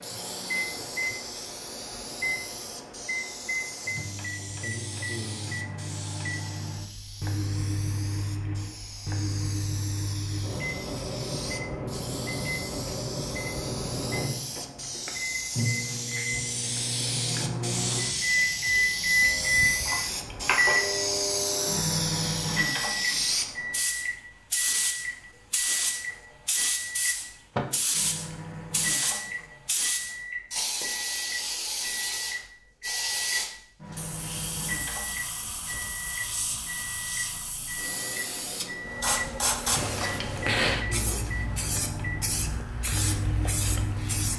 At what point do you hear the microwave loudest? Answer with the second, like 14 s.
19 s.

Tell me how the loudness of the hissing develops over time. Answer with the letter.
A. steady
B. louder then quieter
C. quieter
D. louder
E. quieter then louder
D.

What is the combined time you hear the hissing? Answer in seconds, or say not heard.
44 s.